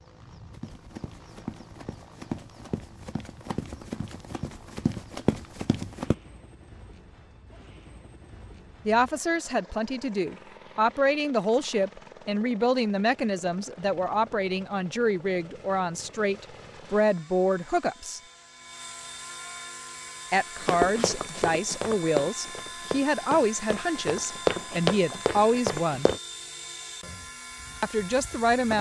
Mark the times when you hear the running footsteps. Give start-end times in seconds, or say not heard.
0.5-6.2, 20.6-26.2.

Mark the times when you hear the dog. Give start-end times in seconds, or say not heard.
not heard.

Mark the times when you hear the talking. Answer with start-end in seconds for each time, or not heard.
8.8-18.2, 20.3-26.1, 27.8-28.7.